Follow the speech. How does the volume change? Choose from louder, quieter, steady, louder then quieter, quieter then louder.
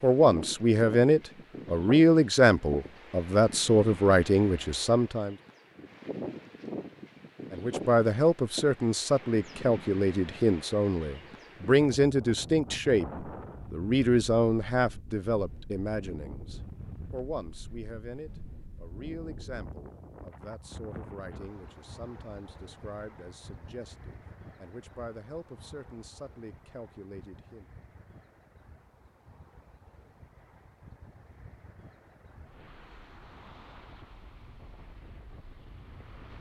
quieter.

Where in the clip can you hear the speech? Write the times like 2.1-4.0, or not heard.
0.0-5.3, 7.5-27.6.